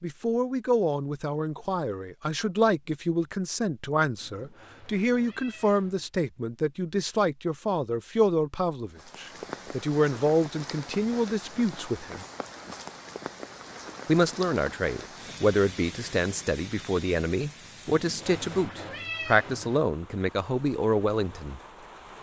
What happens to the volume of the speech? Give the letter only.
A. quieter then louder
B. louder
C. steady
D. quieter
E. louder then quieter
C.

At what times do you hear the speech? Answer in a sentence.
You can hear the speech from 0.0 to 12.2 s and from 14.1 to 21.6 s.